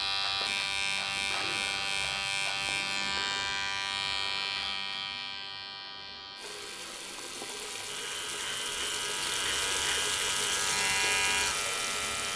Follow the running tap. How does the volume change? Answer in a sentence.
The volume of the running tap goes up.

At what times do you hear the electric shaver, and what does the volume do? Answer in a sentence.
The electric shaver can be heard from 0.0 to 12.3 s, getting quieter then louder.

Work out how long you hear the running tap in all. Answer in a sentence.
You can hear the running tap for 6 seconds altogether.